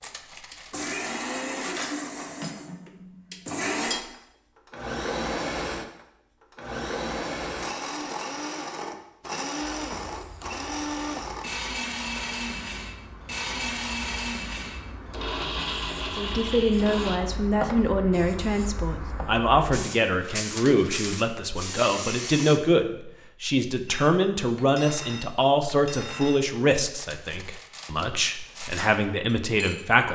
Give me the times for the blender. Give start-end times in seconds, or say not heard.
0.0-17.2.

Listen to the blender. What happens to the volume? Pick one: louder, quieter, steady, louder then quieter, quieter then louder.
steady.